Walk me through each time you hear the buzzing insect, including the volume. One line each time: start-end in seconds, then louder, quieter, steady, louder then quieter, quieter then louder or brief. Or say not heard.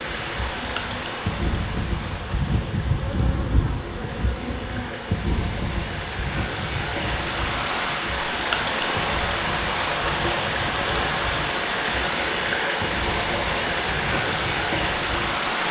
0.0-15.4 quieter.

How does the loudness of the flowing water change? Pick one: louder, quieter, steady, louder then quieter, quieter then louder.
louder.